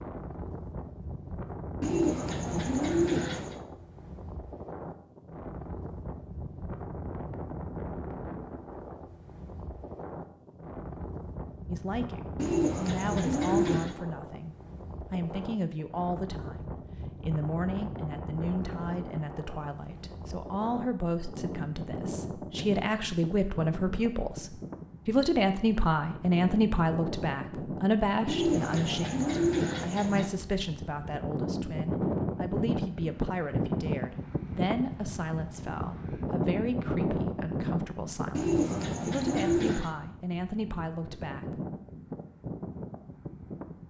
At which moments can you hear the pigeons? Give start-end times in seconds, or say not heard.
1.8-3.5, 12.3-13.9, 28.2-30.3, 38.3-39.9.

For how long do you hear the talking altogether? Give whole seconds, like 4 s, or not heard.
30 s.